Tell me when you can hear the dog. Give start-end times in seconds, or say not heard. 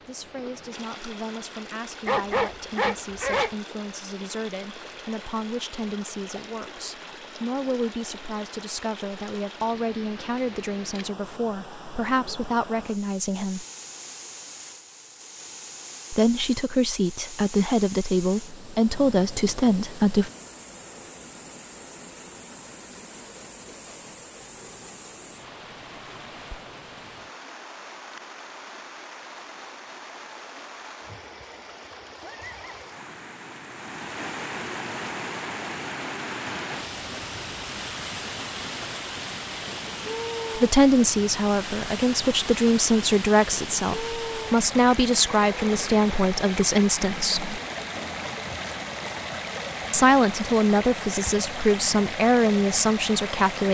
2.0-3.5.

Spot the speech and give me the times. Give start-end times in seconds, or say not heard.
0.1-13.7, 16.1-20.3, 40.5-47.5, 49.9-53.7.